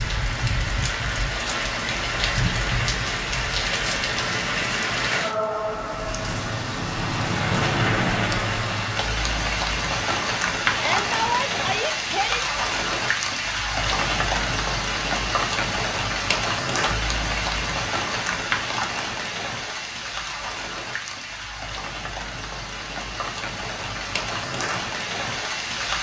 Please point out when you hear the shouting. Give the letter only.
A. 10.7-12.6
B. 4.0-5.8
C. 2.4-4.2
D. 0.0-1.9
A.